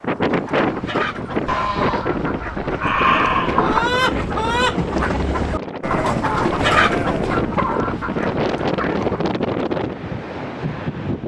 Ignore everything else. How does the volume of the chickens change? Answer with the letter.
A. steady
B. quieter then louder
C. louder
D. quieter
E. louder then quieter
E.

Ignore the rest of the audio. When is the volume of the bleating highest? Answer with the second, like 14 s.
3 s.